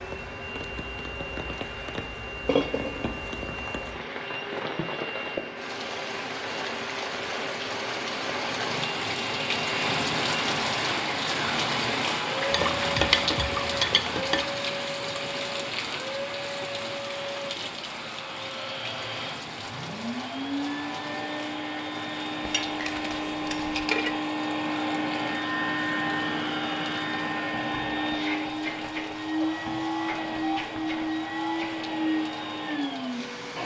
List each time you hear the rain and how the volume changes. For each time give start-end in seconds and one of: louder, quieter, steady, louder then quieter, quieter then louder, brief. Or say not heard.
0.0-33.5 louder then quieter.